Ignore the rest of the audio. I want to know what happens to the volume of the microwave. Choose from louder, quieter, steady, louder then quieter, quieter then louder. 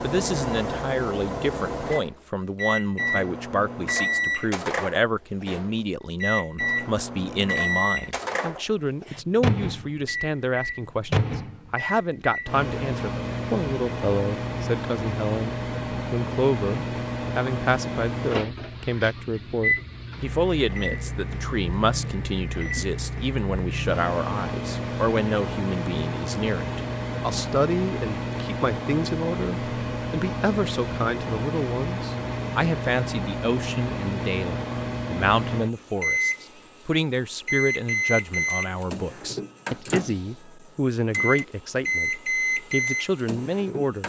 steady.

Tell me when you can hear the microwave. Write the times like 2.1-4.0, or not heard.
0.0-44.0.